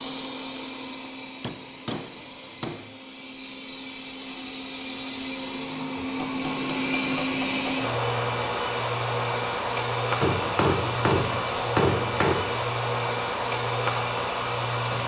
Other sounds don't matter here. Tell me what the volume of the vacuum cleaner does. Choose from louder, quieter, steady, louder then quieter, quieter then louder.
louder.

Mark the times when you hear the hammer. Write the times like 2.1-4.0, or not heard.
1.4-2.9, 6.2-7.9, 10.2-12.7.